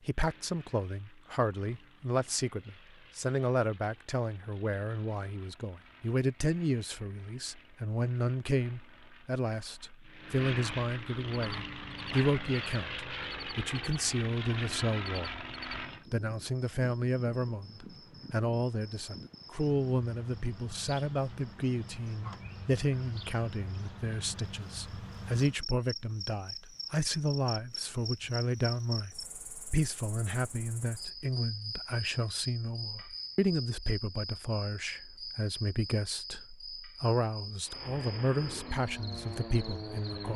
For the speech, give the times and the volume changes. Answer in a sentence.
The speech can be heard from 0.1 to 15.4 s, at a steady volume; and from 16.1 to 40.3 s, at a steady volume.